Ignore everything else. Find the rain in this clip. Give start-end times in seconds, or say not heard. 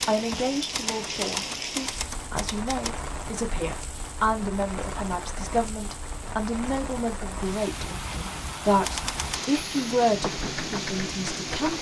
0.0-11.7.